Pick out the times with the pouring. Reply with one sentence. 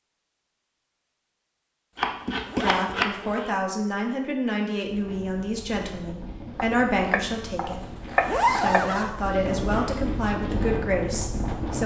You can't hear the pouring here.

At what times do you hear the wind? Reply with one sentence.
You can hear the wind from 4.8 to 11.8 s.